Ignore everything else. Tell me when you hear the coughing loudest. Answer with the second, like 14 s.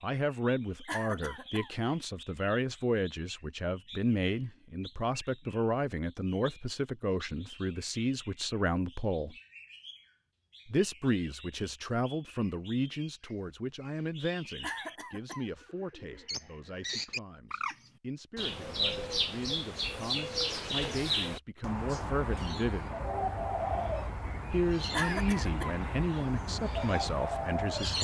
25 s.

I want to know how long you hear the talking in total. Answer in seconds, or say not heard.
25 s.